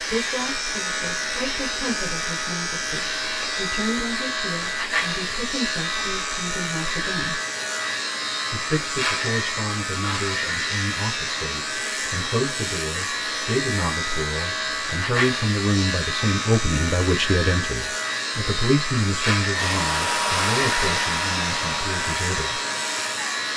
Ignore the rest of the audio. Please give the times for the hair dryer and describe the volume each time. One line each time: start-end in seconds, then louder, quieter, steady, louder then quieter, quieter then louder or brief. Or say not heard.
19.5-23.5 quieter.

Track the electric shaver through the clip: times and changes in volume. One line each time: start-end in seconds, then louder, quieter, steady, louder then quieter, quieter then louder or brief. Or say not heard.
0.0-23.5 steady.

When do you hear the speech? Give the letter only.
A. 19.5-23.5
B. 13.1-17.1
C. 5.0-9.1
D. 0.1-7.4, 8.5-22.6
D.